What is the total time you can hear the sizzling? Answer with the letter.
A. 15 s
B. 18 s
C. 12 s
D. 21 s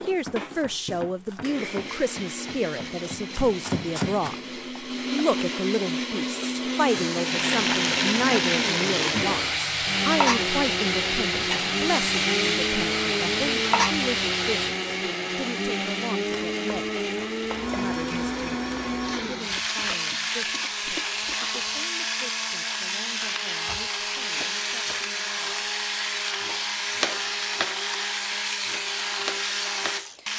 A.